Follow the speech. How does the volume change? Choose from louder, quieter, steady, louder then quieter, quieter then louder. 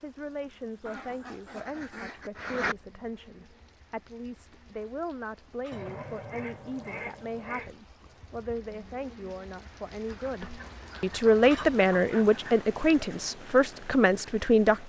louder.